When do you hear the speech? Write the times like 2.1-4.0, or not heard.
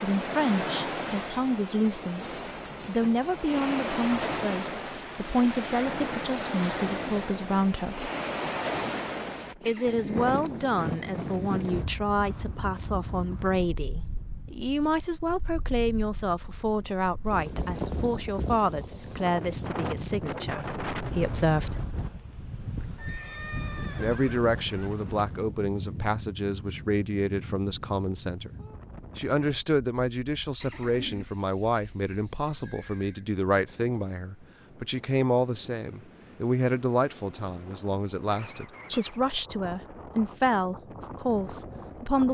0.0-2.2, 2.9-8.1, 9.6-21.9, 23.9-28.6, 29.1-42.2.